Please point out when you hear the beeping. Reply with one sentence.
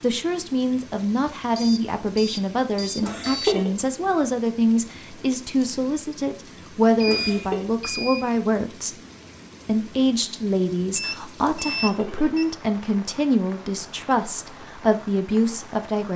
You can hear the beeping from 1.6 to 3.5 s, from 7.0 to 8.3 s and from 10.9 to 12.4 s.